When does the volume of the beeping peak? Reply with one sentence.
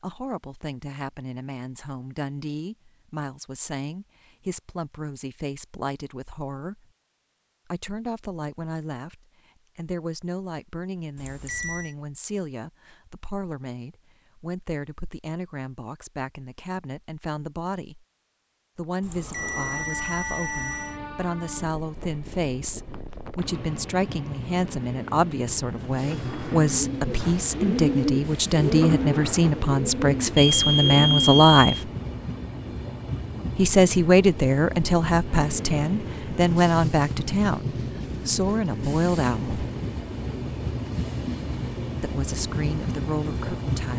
The volume of the beeping peaks at 31 seconds.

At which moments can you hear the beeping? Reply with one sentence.
The beeping can be heard from 11.2 to 11.9 s, from 19.0 to 20.9 s and from 30.4 to 31.9 s.